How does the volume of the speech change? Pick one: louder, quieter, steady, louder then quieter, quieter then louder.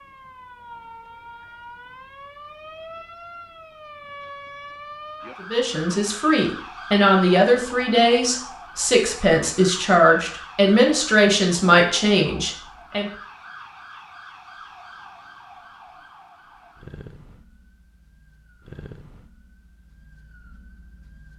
steady.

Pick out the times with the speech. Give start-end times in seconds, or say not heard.
5.5-13.1.